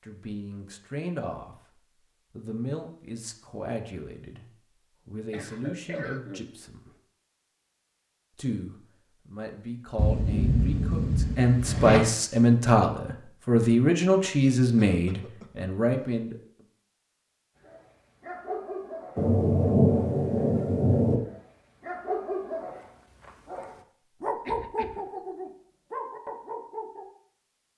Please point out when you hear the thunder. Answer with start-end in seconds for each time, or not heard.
9.9-12.0, 19.1-21.2.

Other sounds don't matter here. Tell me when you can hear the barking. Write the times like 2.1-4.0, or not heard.
17.6-27.1.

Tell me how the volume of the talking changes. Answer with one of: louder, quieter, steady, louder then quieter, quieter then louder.
louder.